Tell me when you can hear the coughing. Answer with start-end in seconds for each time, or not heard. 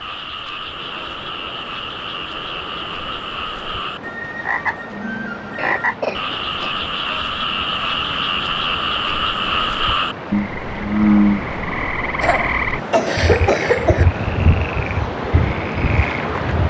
5.5-6.7, 12.2-14.1.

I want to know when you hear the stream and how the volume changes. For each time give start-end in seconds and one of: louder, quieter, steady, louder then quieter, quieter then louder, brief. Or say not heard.
0.0-16.6 louder.